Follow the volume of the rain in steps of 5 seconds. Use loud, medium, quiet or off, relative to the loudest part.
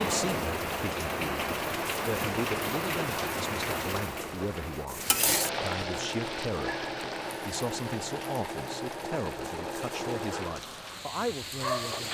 loud, loud, medium.